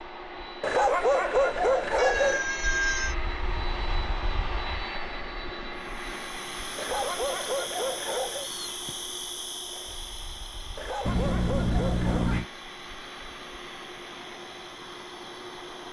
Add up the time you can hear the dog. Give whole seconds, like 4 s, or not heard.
5 s.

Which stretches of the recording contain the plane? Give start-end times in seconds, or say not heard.
0.0-15.8.